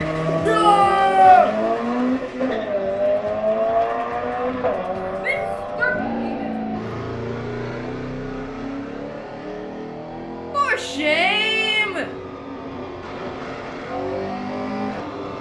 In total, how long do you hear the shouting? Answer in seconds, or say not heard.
4 s.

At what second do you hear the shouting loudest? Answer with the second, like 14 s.
1 s.